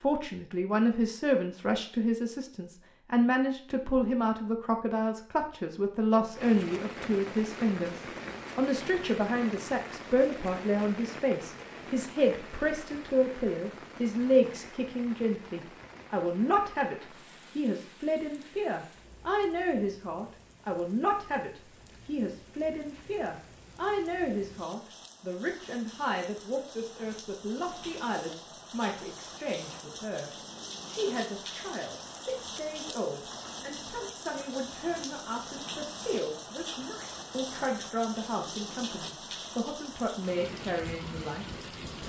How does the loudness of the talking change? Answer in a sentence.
The volume of the talking goes down.